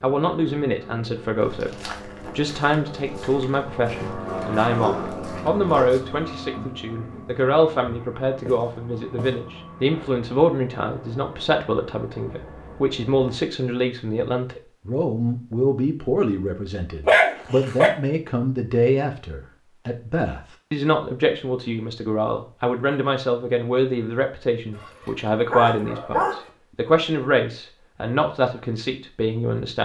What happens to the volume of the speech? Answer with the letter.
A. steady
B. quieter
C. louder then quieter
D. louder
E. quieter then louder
A.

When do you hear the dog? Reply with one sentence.
The dog can be heard from 4.2 to 6.0 s, from 17.1 to 17.9 s and from 24.8 to 26.4 s.